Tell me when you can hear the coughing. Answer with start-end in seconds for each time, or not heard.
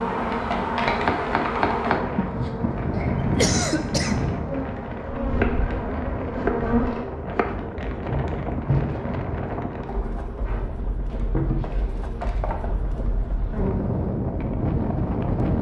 3.0-4.2.